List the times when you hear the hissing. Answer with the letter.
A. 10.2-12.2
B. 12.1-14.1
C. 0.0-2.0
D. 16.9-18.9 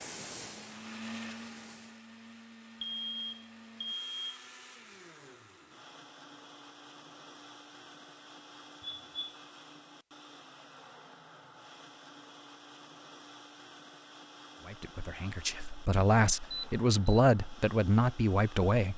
C.